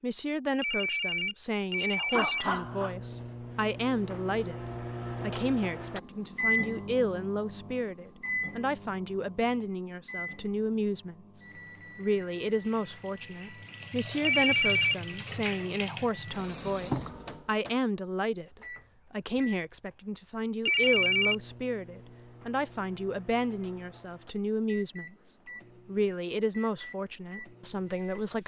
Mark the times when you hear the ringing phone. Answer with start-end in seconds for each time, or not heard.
0.6-3.0, 14.2-14.9, 20.6-21.4.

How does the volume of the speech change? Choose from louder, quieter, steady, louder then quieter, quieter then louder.
steady.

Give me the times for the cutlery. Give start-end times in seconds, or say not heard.
not heard.